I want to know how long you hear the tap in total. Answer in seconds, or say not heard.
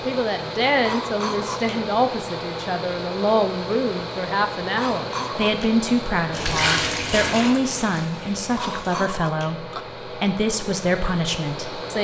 3 s.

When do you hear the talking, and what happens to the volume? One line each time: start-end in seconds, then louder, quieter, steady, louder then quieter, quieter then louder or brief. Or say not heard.
0.1-11.9 steady.